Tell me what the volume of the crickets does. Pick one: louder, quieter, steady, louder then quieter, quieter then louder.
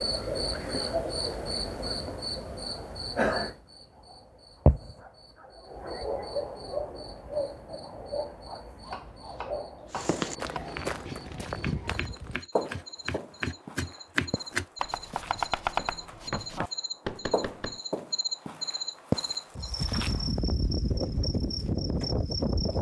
quieter then louder.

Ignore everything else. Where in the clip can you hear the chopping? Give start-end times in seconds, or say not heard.
8.8-17.8.